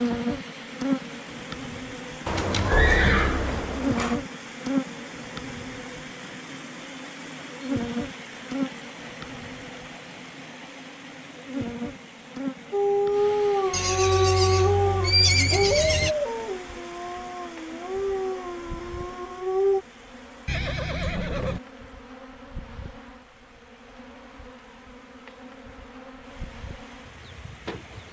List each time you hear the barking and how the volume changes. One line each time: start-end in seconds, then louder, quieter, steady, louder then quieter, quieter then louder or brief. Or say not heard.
12.7-19.8 quieter.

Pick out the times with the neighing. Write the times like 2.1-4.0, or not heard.
2.2-4.2, 13.7-16.1, 20.4-21.6.